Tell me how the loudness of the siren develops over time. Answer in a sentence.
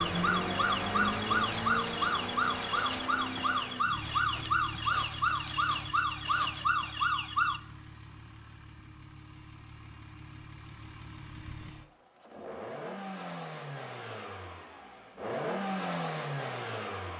The volume of the siren stays about the same.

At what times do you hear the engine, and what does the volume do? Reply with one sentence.
You can hear the engine from 0.0 to 17.1 s, getting quieter then louder.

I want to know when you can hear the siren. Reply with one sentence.
You can hear the siren from 0.0 to 7.6 s.